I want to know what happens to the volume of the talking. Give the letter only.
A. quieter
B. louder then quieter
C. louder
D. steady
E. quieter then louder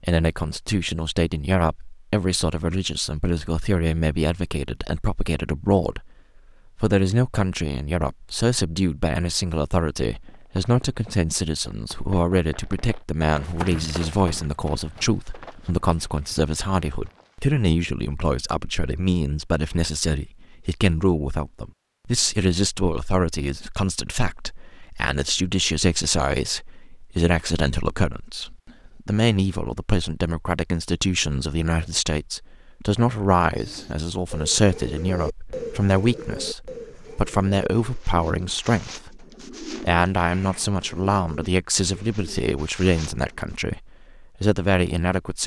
D.